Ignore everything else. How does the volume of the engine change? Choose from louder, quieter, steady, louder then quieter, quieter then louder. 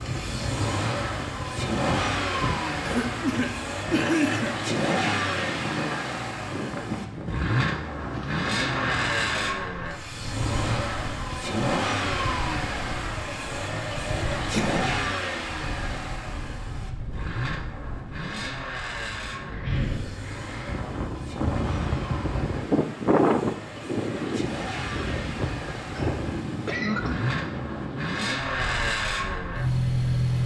quieter then louder.